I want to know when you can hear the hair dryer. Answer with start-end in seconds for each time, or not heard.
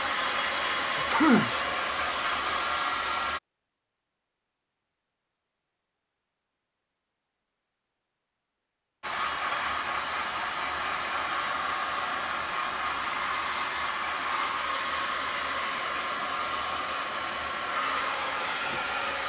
0.0-3.4, 9.0-19.2.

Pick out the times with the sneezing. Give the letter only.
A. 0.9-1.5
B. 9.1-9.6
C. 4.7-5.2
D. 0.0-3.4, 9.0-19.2
A.